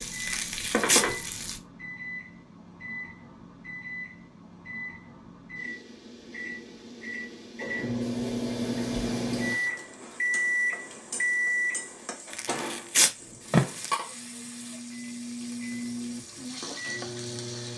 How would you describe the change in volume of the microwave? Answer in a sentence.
The volume of the microwave goes up, then down.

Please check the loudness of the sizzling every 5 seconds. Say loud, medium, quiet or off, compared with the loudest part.
loud, quiet, medium, medium.